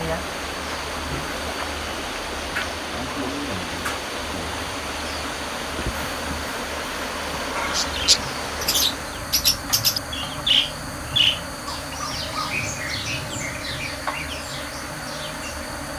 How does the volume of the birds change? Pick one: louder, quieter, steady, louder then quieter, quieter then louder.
quieter.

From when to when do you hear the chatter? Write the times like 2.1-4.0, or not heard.
not heard.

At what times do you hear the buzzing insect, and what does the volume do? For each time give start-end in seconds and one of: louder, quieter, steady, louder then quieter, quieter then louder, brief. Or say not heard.
0.0-15.9 steady.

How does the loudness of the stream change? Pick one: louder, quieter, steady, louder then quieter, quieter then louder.
steady.